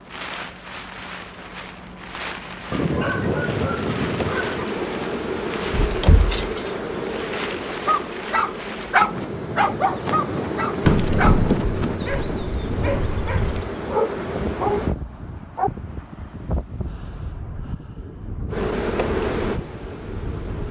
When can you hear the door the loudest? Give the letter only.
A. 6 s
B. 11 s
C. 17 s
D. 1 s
B.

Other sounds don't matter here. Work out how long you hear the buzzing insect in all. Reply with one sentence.
The buzzing insect can be heard for 14 seconds in total.